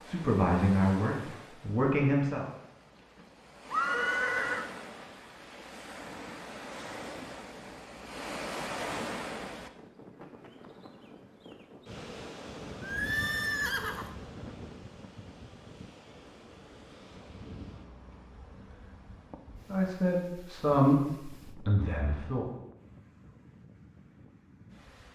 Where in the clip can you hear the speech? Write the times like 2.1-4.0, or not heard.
0.0-2.5, 19.7-22.4.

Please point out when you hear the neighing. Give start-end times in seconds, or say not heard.
3.7-4.7, 12.8-14.2.